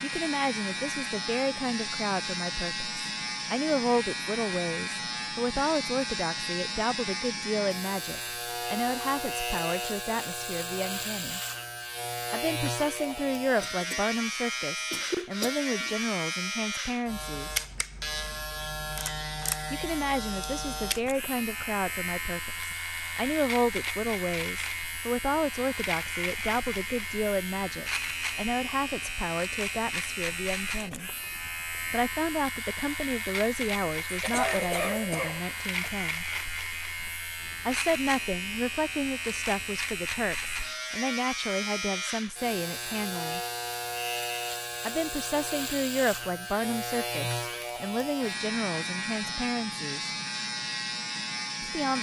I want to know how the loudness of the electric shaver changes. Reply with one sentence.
The volume of the electric shaver stays about the same.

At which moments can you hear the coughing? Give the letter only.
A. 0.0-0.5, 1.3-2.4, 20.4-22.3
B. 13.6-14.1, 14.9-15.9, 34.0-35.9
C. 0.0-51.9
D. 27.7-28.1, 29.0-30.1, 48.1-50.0
B.